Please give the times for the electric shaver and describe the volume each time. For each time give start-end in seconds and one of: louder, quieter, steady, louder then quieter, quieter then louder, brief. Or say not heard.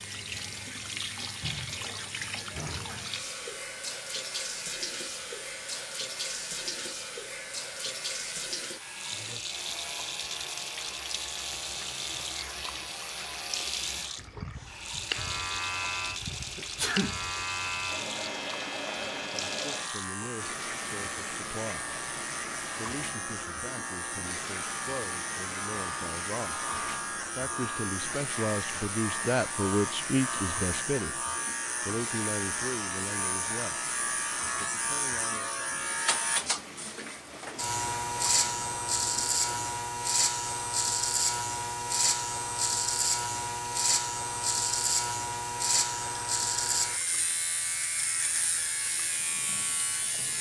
0.0-50.3 louder.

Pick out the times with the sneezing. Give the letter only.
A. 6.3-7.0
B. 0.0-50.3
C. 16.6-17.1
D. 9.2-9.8
C.